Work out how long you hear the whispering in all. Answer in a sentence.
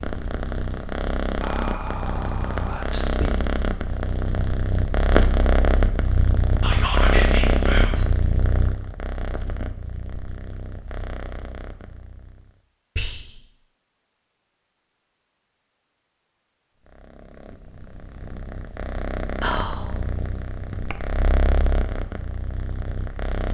You can hear the whispering for 4 seconds altogether.